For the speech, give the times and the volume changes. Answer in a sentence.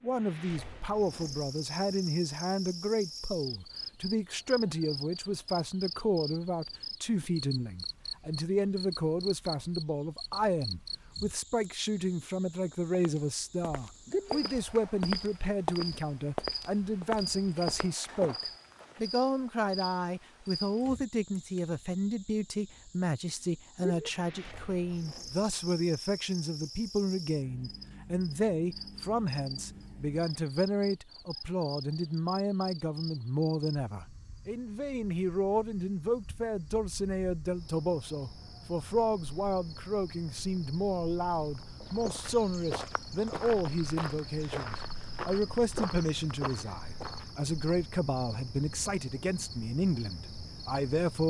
The speech can be heard from 0.0 to 51.2 s, at a steady volume.